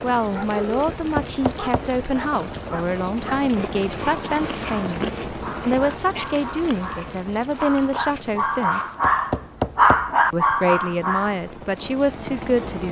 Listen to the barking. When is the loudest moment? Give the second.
10 s.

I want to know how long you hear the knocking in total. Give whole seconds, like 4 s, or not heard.
3 s.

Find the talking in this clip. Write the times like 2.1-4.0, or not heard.
0.0-8.8, 10.3-12.8.